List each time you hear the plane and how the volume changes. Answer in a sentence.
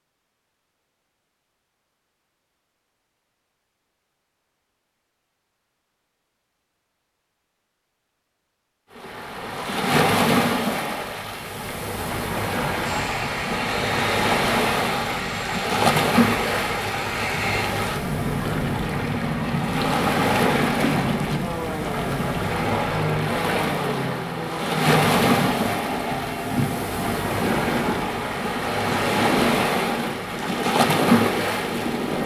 The plane can be heard from 12.8 to 32.2 s, at a steady volume.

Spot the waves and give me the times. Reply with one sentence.
You can hear the waves from 8.9 to 32.2 s.